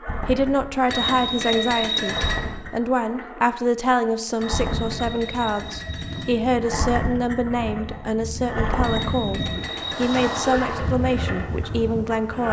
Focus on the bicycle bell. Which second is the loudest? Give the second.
2 s.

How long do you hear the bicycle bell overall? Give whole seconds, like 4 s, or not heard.
5 s.